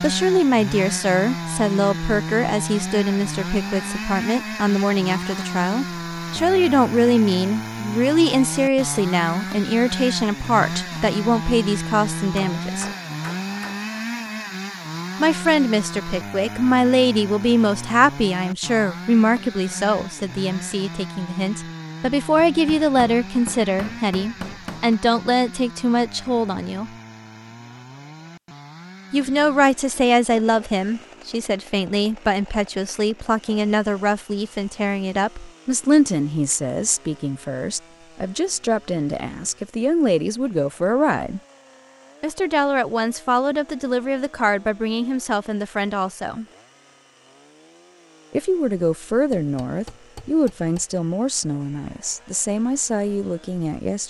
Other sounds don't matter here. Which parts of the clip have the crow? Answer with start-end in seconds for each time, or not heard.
not heard.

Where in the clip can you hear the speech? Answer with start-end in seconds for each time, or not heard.
0.0-12.9, 15.2-26.9, 29.1-41.4, 42.2-46.5, 48.3-54.0.